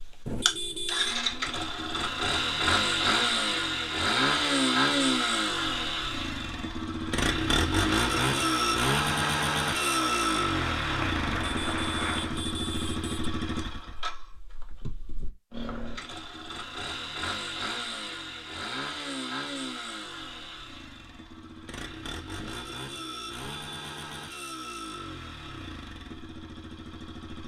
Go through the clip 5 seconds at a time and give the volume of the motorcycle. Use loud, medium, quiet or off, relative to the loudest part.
loud, loud, medium, medium, quiet, quiet.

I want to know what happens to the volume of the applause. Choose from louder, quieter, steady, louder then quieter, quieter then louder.
steady.